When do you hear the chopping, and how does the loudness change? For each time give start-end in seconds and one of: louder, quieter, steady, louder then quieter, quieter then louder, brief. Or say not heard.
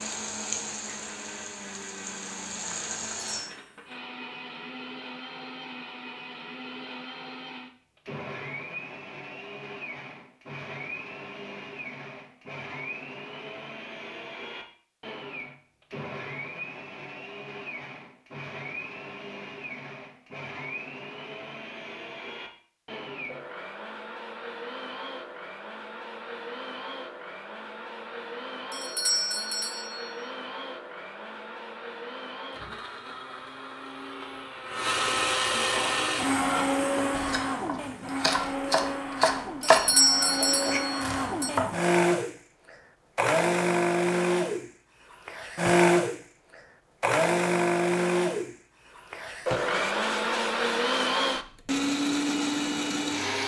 35.7-41.9 louder then quieter.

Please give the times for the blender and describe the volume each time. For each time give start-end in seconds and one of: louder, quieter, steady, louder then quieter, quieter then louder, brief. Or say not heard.
0.0-53.4 louder.